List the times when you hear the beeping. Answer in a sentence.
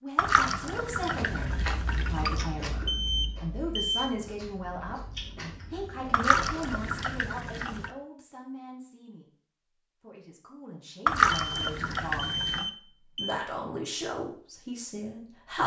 The beeping can be heard from 2.9 to 4.1 s and from 11.4 to 13.4 s.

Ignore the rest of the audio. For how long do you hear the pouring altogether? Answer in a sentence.
You can hear the pouring for 6 seconds altogether.